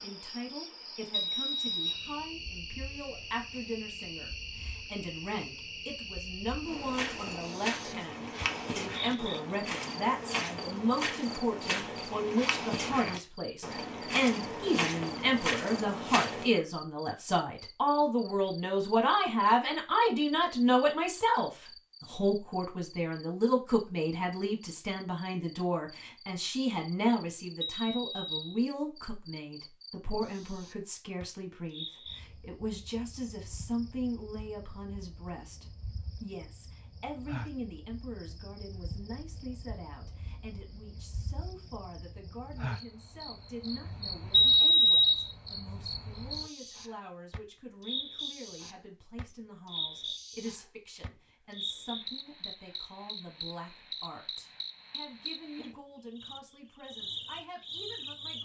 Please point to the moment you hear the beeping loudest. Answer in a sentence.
The loudest moment of the beeping is at 45 seconds.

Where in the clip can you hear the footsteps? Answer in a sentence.
You can hear the footsteps from 6.7 to 16.5 s.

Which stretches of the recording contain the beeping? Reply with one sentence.
You can hear the beeping from 1.1 to 2.1 s, from 27.6 to 28.6 s and from 44.3 to 45.3 s.